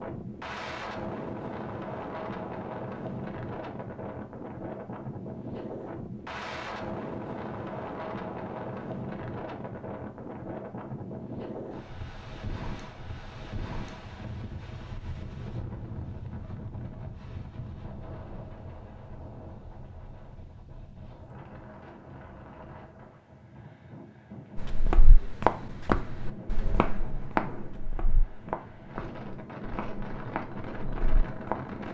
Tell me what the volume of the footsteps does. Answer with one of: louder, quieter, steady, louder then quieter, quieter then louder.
quieter.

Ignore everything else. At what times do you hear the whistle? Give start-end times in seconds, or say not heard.
not heard.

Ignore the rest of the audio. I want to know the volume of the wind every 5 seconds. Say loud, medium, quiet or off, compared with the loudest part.
loud, loud, loud, medium, medium, medium, loud.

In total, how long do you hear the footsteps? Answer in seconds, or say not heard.
7 s.